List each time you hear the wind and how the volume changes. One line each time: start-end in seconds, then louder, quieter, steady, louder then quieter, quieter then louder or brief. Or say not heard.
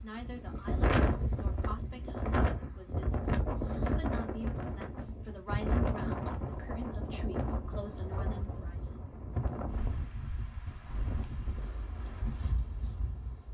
0.0-13.4 quieter.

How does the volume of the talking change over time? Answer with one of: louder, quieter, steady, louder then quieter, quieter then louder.
quieter then louder.